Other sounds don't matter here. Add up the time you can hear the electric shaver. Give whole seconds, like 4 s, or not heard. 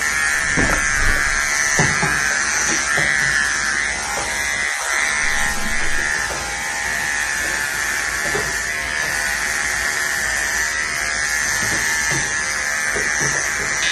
14 s.